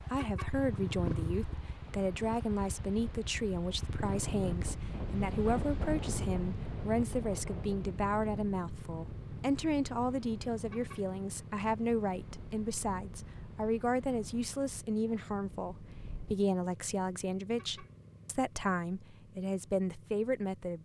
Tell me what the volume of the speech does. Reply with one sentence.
The volume of the speech stays about the same.